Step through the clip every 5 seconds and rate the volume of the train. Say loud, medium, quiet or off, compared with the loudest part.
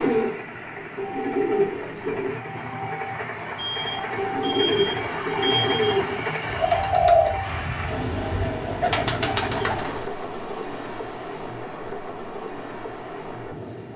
loud, loud, medium.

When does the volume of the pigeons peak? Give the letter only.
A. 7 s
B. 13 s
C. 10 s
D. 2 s
A.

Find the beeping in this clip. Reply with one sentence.
You can hear the beeping from 3.5 to 6.0 s.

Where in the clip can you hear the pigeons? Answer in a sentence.
The pigeons can be heard from 0.0 to 2.4 s and from 3.9 to 10.1 s.